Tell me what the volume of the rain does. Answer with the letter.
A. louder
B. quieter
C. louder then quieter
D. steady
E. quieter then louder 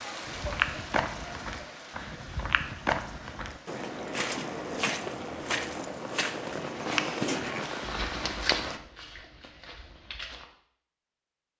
E.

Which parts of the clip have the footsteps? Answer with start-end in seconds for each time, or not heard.
0.2-10.4.